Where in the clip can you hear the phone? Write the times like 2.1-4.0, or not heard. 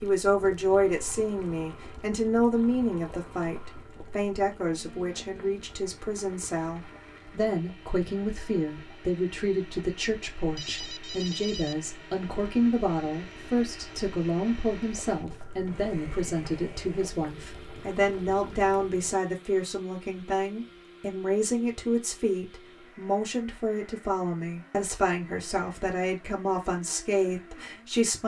10.6-11.8.